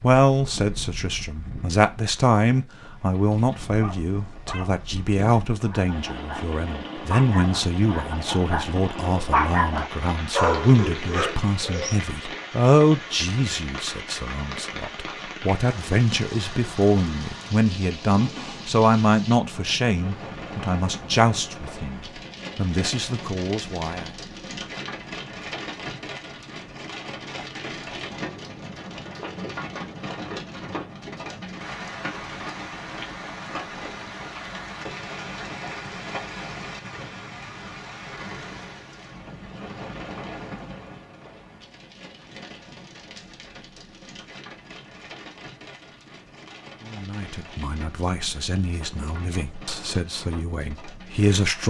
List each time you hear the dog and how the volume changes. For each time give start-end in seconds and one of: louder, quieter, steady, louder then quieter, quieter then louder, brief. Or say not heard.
3.1-12.0 louder.